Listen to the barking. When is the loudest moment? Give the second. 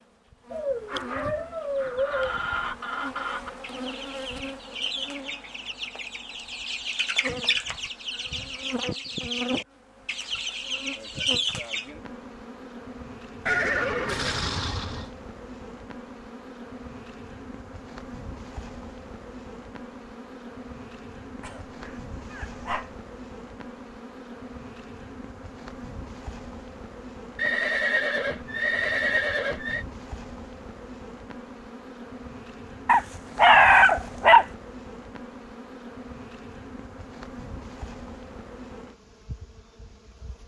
34 s.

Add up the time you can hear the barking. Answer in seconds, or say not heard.
5 s.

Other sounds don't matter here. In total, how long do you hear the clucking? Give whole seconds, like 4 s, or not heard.
10 s.